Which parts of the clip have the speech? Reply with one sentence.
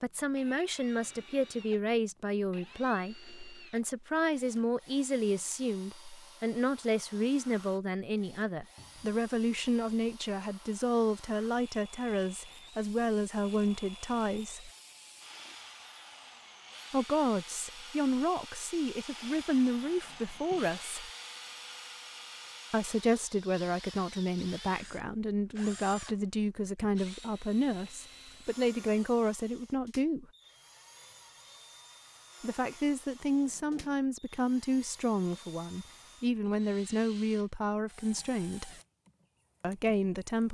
You can hear the speech from 0.0 to 14.7 s, from 16.9 to 21.1 s, from 22.7 to 30.2 s, from 32.4 to 38.8 s and from 39.6 to 40.4 s.